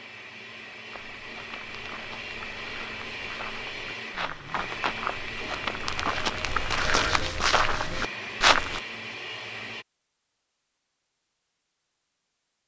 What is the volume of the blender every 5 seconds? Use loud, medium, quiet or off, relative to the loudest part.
loud, loud, off.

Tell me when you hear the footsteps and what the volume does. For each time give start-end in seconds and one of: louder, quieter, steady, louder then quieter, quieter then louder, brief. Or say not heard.
0.9-8.8 louder.